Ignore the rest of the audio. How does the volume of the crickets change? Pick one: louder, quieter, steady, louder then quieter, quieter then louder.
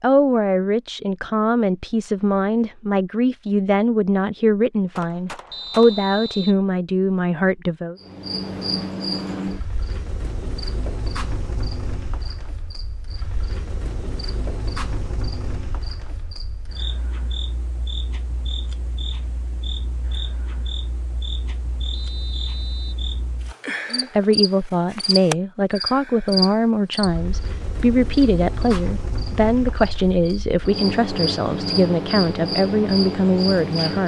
quieter then louder.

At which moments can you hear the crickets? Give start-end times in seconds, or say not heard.
8.0-34.0.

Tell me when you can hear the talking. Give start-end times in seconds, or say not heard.
0.0-8.0, 23.9-34.0.